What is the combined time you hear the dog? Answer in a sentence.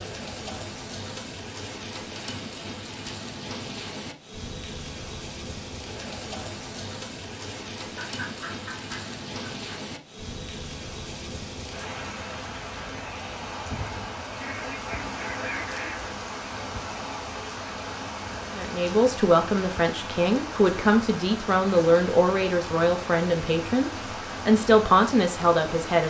The dog can't be heard in this clip.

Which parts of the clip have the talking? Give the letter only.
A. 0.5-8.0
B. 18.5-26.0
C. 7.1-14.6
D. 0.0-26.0
B.